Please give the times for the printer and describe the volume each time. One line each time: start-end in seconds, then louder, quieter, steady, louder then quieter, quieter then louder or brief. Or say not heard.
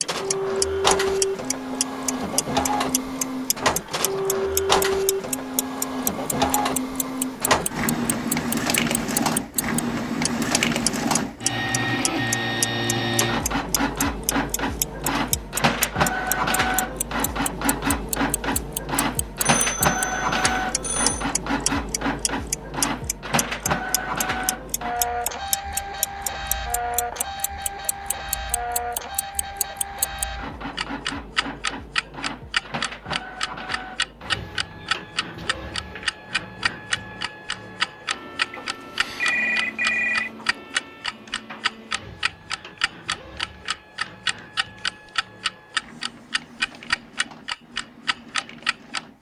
0.0-49.1 quieter.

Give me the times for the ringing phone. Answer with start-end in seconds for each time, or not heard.
19.4-21.2, 38.5-40.3.